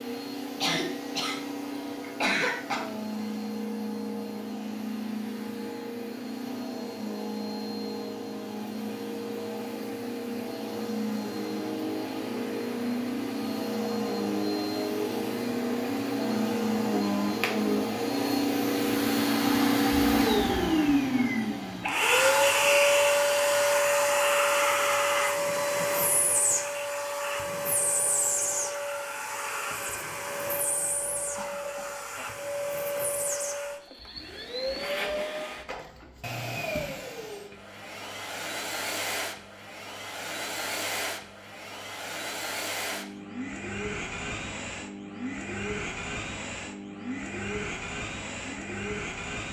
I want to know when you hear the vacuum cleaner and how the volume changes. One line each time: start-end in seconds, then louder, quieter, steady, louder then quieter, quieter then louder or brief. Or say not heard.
0.0-49.4 louder then quieter.